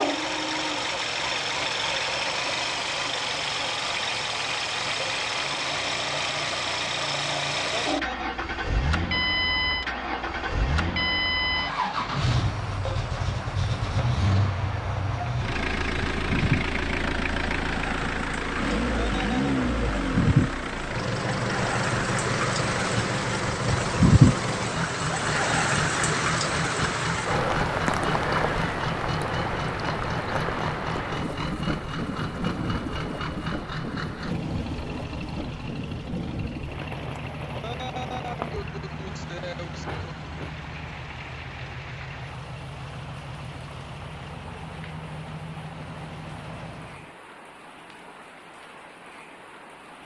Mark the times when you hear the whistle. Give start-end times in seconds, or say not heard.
not heard.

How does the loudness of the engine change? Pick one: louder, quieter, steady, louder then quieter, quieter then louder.
quieter.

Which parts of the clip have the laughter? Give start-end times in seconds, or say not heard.
7.7-8.3, 19.1-19.6, 37.5-39.9.